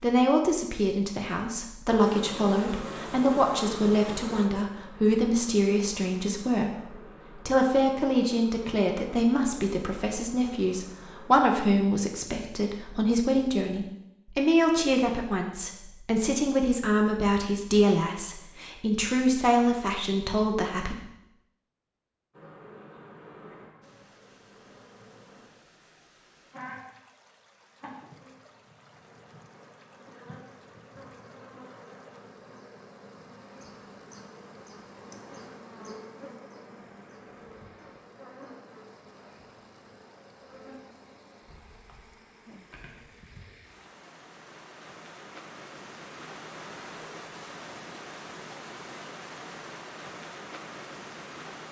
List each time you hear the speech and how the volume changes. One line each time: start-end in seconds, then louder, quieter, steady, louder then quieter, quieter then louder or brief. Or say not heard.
0.0-20.9 steady.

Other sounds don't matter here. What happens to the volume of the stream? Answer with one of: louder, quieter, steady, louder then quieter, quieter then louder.
louder.